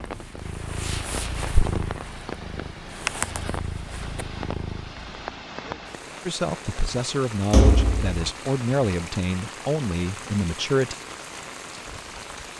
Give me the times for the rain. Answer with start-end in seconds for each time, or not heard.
0.0-12.5.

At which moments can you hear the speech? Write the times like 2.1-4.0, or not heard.
6.2-10.9.